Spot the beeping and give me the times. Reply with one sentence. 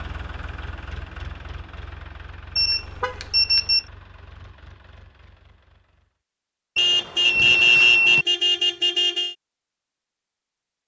The beeping can be heard from 2.5 to 3.9 s and from 6.8 to 8.2 s.